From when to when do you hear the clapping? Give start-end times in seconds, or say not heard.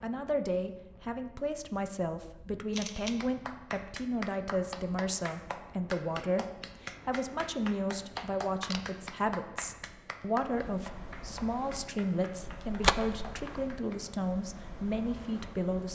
3.1-14.0.